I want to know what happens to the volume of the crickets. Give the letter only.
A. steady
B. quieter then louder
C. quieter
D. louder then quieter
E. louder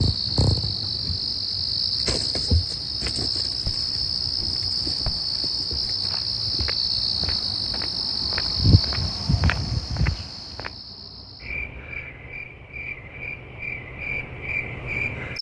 C.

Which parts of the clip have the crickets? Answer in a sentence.
The crickets can be heard from 0.0 to 15.3 s.